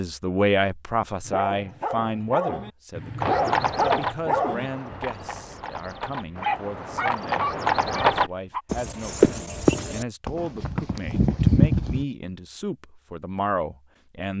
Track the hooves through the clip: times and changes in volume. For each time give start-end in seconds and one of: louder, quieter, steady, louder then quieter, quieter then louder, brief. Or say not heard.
3.2-12.1 quieter then louder.